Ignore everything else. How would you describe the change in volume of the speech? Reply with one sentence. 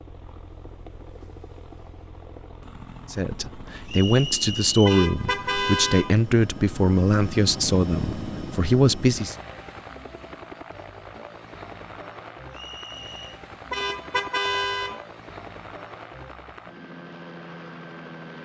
The volume of the speech stays about the same.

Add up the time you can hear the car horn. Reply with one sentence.
You can hear the car horn for 3 seconds altogether.